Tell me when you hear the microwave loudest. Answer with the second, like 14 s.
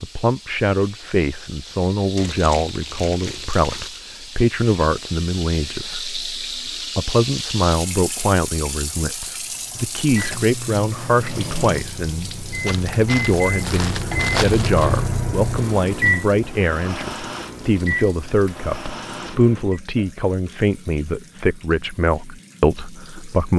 16 s.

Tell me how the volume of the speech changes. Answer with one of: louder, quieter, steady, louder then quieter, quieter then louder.
steady.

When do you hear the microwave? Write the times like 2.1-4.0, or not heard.
9.2-19.8.